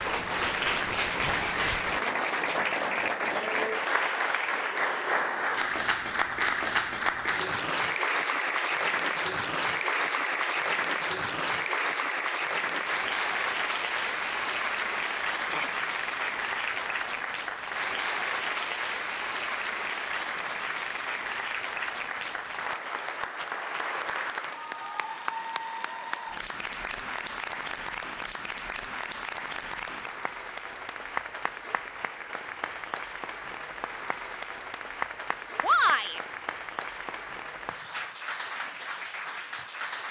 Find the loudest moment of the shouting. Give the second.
36 s.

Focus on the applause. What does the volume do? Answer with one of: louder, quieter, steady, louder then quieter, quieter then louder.
quieter.